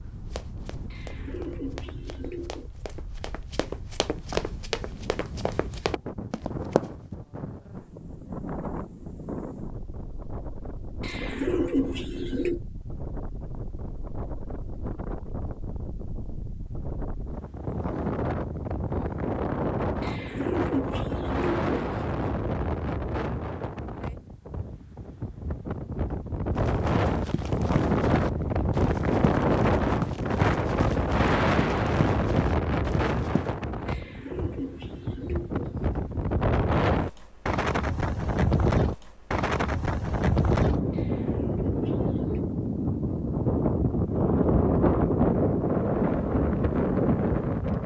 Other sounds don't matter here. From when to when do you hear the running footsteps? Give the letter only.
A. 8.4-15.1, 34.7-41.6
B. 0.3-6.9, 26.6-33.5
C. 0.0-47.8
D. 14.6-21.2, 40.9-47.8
B.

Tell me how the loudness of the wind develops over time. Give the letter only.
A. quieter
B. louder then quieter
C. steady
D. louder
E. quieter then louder
D.